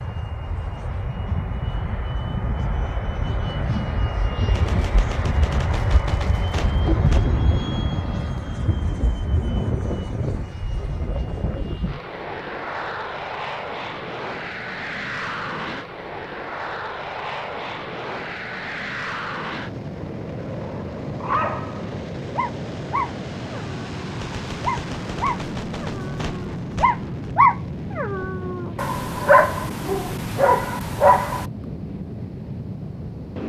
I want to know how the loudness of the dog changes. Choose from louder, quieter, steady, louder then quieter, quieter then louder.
louder.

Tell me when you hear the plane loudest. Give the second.
7 s.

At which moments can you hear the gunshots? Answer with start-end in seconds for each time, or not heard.
4.5-7.3, 24.2-27.4.